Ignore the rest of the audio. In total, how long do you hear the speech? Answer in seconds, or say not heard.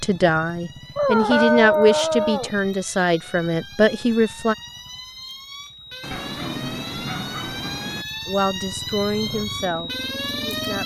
7 s.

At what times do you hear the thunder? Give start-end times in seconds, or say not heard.
6.0-8.1.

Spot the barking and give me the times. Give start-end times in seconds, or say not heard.
0.9-2.5, 6.1-7.7.